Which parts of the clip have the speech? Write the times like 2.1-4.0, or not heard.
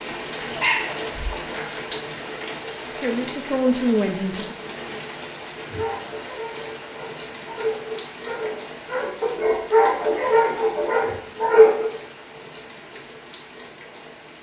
3.0-4.5.